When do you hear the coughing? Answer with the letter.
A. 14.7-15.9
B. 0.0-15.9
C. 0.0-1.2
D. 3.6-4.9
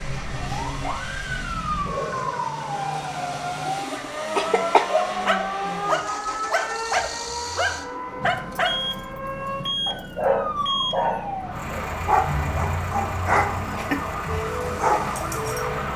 D.